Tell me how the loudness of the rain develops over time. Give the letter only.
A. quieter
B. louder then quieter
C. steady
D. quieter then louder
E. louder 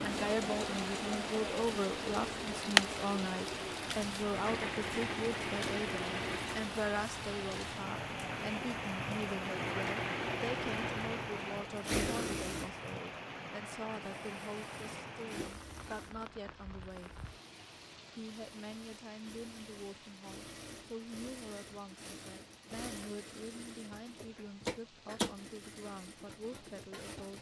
A.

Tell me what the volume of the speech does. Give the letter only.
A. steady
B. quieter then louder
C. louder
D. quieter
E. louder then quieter
D.